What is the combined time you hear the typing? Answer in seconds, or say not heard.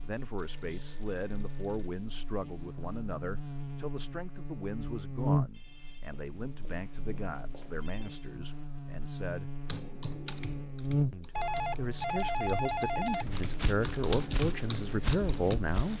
6 s.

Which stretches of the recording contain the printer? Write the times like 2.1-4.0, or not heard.
not heard.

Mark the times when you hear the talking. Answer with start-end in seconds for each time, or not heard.
0.0-9.5, 11.1-15.9.